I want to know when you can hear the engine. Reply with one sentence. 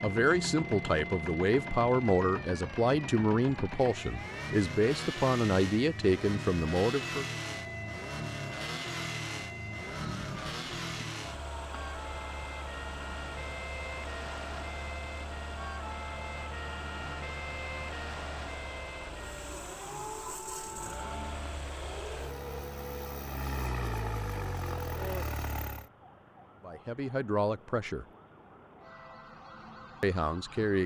You can hear the engine from 0.0 to 25.9 s.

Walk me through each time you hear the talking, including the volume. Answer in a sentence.
The talking can be heard from 0.0 to 7.3 s, at a steady volume; briefly from 26.6 to 28.1 s; and briefly from 30.0 to 30.8 s.